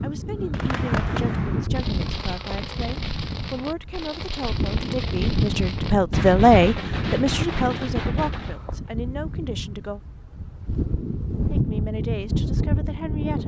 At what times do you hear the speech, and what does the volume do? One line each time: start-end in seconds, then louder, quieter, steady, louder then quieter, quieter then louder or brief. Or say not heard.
0.0-10.0 louder then quieter
11.5-13.4 brief.